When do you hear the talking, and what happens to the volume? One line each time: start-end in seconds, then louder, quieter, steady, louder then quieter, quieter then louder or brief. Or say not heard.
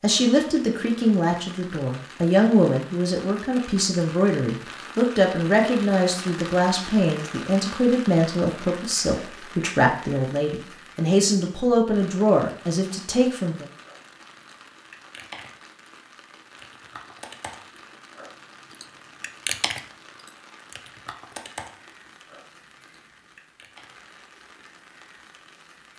0.0-13.7 steady.